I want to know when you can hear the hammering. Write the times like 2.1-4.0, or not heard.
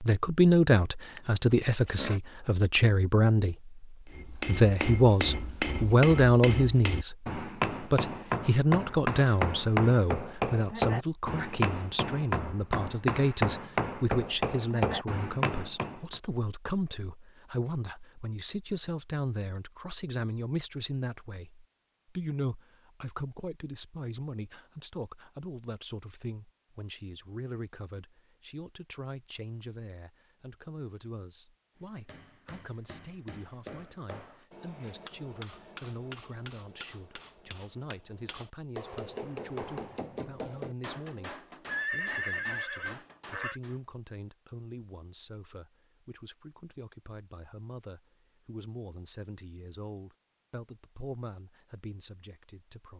4.1-16.2, 31.8-43.8.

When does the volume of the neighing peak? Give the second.
42 s.